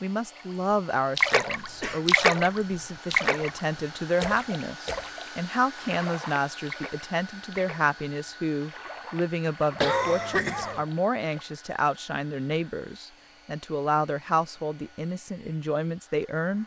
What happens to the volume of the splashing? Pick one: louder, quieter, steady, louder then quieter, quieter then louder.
quieter.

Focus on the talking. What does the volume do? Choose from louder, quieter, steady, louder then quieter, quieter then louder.
steady.